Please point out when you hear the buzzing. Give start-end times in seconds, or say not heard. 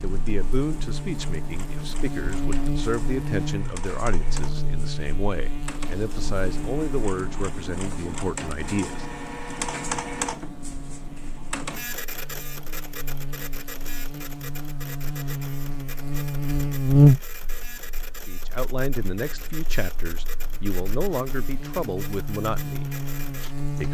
0.0-23.8.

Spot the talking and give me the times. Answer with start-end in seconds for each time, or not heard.
0.0-9.1, 18.2-22.9.